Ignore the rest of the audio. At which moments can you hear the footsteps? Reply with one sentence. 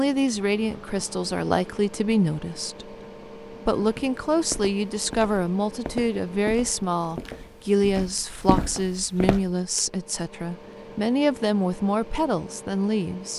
You can hear the footsteps from 3.8 to 9.6 s.